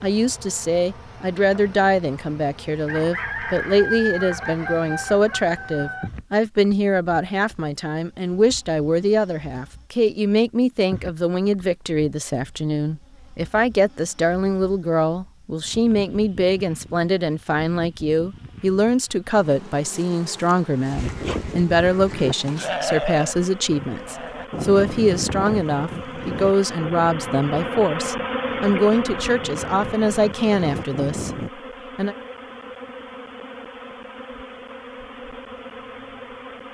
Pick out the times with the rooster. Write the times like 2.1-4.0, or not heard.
2.9-6.1.